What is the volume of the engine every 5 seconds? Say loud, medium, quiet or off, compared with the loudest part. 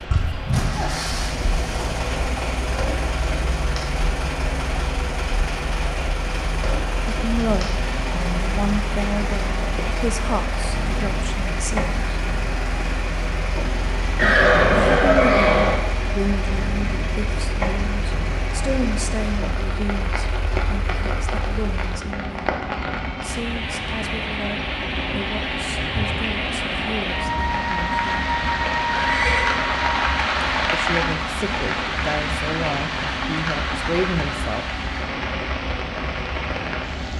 loud, loud, loud, medium, medium, medium, medium, medium.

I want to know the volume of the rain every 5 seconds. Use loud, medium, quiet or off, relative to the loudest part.
medium, medium, medium, medium, medium, loud, loud, medium.